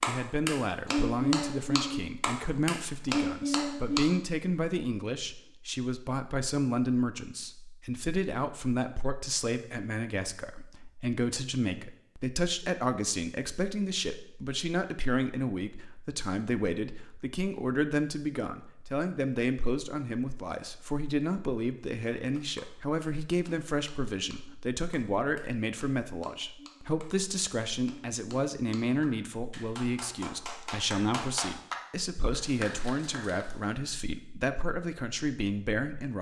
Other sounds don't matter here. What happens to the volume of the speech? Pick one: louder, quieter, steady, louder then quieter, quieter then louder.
steady.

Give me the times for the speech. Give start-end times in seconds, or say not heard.
0.0-36.1.